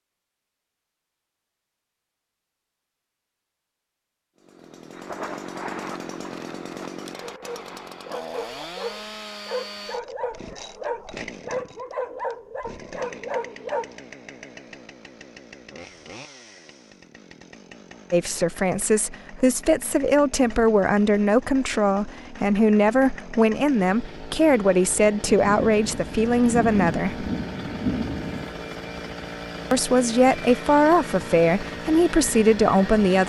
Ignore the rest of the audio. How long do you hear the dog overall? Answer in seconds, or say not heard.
7 s.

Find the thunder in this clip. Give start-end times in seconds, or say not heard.
4.9-8.0, 25.2-28.6.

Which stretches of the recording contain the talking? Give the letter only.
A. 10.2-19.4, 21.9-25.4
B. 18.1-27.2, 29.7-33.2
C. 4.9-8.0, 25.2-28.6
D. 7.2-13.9
B.